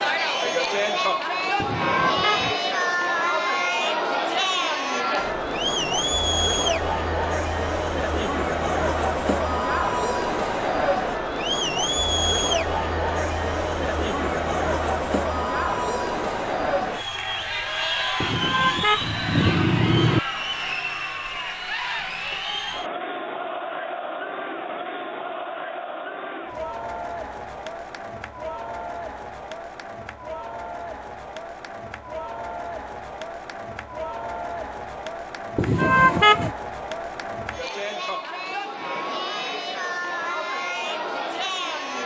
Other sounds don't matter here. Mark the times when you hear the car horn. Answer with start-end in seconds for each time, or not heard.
1.6-2.5, 18.2-20.2, 35.5-36.5.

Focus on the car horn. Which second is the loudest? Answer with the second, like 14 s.
36 s.